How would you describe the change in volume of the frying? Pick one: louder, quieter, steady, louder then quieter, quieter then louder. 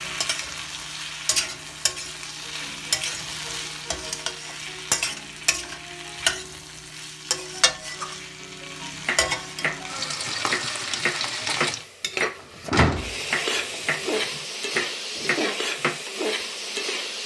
steady.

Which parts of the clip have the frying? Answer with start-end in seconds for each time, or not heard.
0.0-17.2.